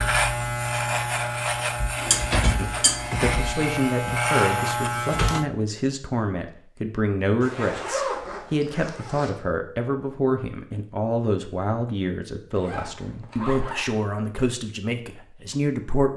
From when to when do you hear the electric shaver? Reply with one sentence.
The electric shaver can be heard from 0.0 to 5.5 s.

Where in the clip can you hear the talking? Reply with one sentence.
The talking can be heard from 2.5 to 16.1 s.